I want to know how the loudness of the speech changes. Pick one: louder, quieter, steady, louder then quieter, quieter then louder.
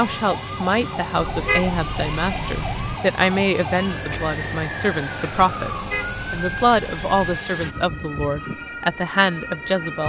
steady.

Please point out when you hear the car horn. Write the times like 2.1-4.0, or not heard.
1.1-3.0, 5.7-7.4.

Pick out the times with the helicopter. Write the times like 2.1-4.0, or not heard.
0.0-7.8.